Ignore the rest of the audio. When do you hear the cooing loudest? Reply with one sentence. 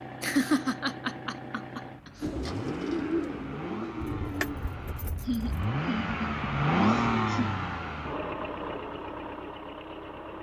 The loudest moment of the cooing is at 3 seconds.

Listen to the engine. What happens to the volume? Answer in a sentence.
The loudness of the engine goes up, then down.